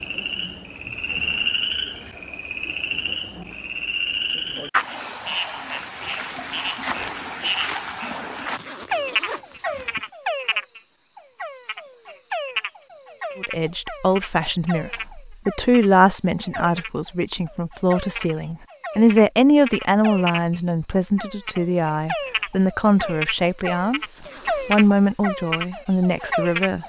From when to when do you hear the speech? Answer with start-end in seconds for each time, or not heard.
13.3-26.8.